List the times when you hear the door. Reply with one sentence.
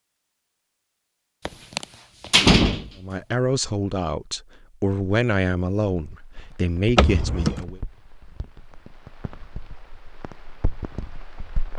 You can hear the door from 1.4 to 3.4 s and from 7.0 to 7.7 s.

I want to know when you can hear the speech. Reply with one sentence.
You can hear the speech from 3.0 to 7.8 s.